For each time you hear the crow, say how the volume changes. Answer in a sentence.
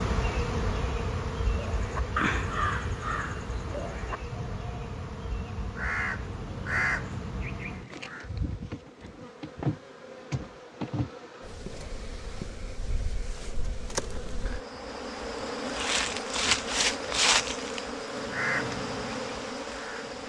The crow can be heard from 1.4 to 8.2 s, getting quieter then louder; and briefly from 18.2 to 20.2 s.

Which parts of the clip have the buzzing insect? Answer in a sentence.
The buzzing insect can be heard from 0.0 to 20.2 s.